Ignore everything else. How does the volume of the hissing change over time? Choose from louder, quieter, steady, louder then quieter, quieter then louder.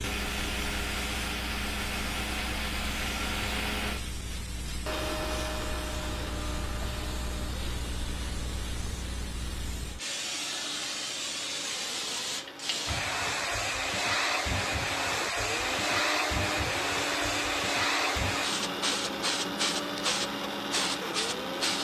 louder.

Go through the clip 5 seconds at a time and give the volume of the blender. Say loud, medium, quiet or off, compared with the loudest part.
loud, medium, medium, loud, loud.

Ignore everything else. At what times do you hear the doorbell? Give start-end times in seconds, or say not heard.
not heard.